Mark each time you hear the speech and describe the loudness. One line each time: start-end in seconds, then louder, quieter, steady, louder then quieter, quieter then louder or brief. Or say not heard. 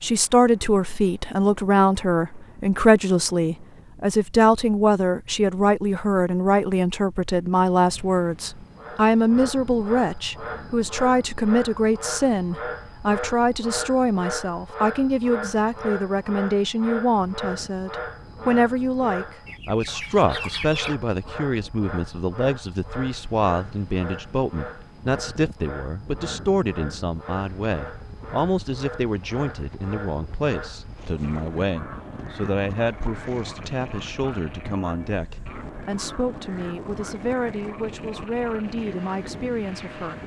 0.0-40.2 quieter.